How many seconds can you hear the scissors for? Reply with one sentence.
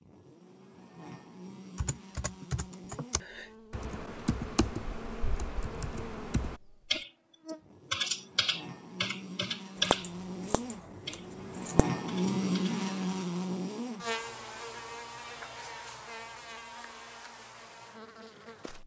The scissors can be heard for 2 seconds in total.